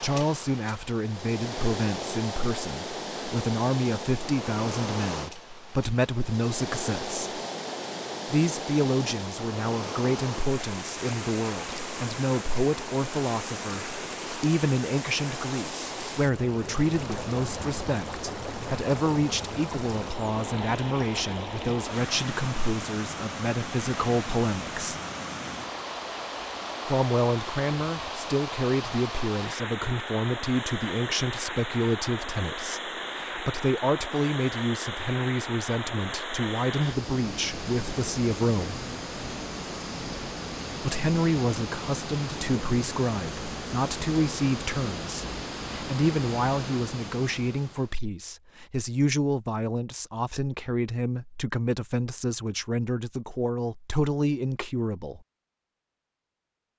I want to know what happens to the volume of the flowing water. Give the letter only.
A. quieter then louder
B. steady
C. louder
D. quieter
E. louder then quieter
B.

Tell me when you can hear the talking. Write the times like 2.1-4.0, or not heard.
0.0-7.4, 8.2-24.9, 26.9-38.8, 40.8-55.2.